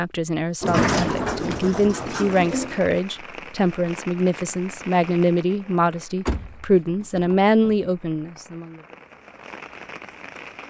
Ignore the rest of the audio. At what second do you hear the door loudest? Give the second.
1 s.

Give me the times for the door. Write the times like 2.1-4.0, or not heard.
0.6-2.8, 6.2-7.9.